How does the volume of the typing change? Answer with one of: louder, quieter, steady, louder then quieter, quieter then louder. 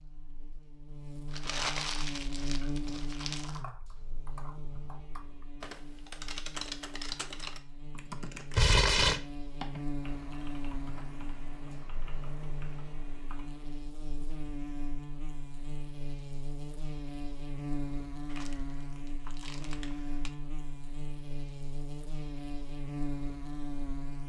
louder then quieter.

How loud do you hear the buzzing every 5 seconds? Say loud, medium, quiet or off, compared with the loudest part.
loud, medium, loud, loud, loud.